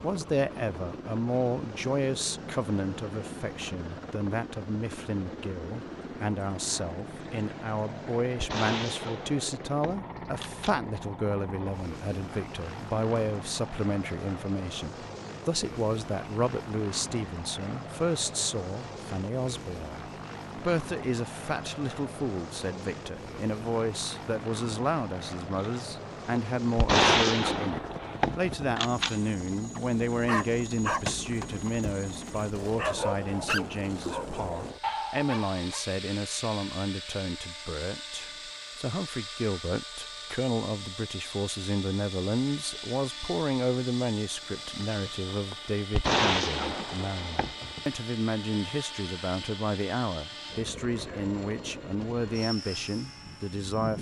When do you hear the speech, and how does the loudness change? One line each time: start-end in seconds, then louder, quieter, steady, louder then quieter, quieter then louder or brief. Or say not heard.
0.0-53.9 steady.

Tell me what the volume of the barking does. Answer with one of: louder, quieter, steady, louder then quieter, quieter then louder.
quieter then louder.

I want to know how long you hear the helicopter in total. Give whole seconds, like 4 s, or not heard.
54 s.